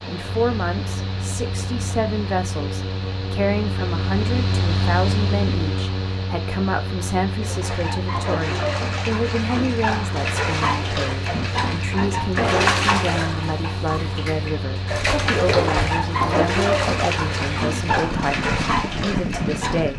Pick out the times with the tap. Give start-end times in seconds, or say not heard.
7.4-19.9.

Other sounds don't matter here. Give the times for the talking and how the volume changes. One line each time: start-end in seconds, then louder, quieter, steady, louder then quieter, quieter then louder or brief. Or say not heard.
0.1-19.9 steady.